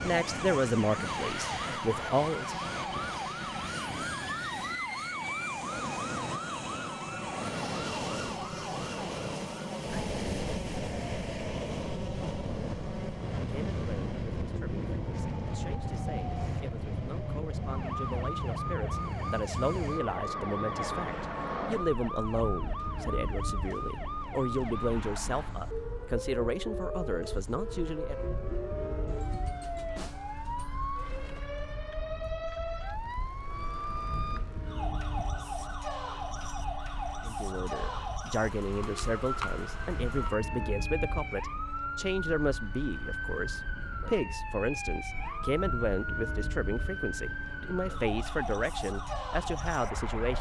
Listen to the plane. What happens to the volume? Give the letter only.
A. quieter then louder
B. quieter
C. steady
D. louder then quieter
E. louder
B.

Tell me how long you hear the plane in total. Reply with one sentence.
You can hear the plane for 50 seconds altogether.